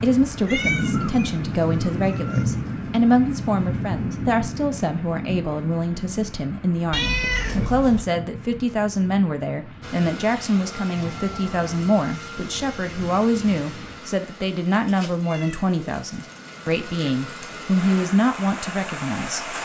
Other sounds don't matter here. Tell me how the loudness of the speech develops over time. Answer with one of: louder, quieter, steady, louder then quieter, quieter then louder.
steady.